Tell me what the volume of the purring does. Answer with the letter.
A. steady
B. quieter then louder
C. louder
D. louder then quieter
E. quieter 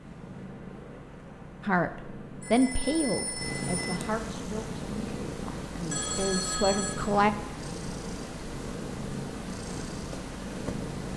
C.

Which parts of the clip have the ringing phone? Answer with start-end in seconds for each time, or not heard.
2.4-4.0, 5.9-7.0.